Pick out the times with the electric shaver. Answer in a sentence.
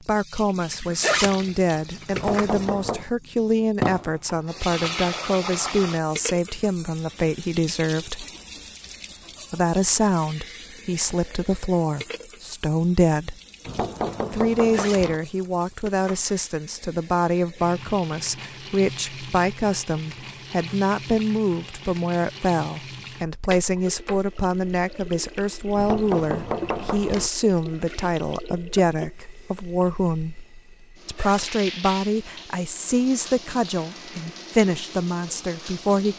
You can't hear the electric shaver here.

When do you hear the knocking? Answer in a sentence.
The knocking can be heard from 2.1 to 3.0 s, from 13.7 to 15.2 s and from 25.8 to 27.3 s.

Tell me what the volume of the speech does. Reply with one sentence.
The volume of the speech stays about the same.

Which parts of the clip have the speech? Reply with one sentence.
The speech can be heard from 0.1 to 8.2 s, from 9.5 to 13.3 s, from 14.3 to 30.4 s and from 31.1 to 36.1 s.